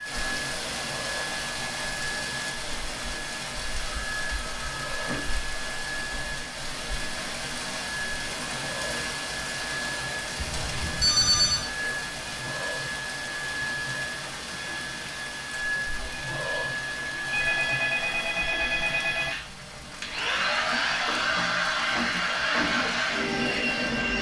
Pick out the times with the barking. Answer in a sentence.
You can't hear the barking here.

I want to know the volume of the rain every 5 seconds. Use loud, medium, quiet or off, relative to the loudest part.
loud, loud, loud, medium, medium.